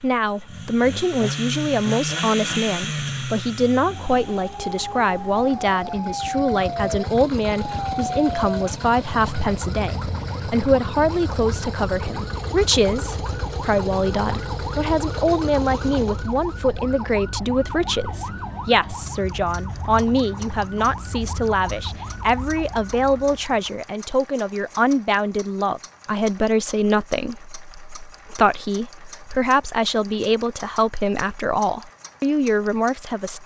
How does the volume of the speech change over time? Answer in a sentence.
The loudness of the speech stays about the same.